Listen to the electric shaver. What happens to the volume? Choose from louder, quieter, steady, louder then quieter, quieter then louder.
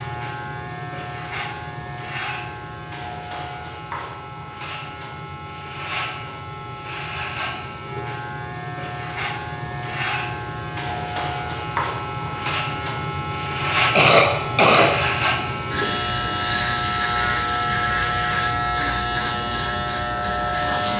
louder.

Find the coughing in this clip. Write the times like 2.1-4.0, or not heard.
13.9-15.1.